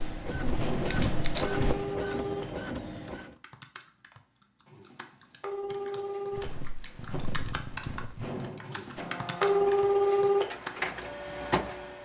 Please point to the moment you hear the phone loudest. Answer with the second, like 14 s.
10 s.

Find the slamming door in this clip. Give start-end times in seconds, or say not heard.
0.6-1.6, 8.2-9.2.